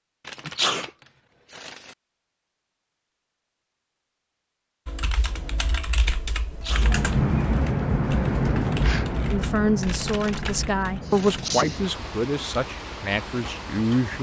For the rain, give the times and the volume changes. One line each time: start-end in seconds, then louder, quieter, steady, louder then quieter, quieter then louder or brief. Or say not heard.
6.7-14.1 quieter.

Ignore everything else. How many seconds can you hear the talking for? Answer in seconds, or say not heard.
5 s.